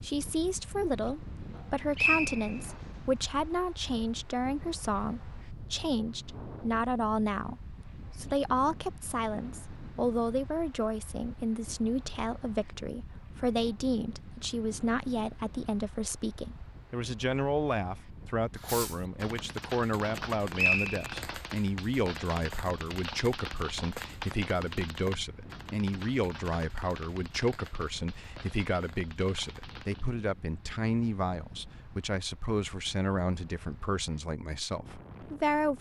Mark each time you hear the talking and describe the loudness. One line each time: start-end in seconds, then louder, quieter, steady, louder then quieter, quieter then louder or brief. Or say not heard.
0.0-35.7 steady.